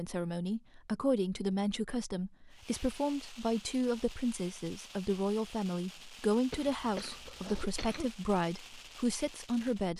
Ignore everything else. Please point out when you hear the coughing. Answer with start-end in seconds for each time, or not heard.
6.5-8.1.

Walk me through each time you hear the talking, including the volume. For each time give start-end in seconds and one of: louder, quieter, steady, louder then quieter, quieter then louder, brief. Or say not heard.
0.0-9.9 steady.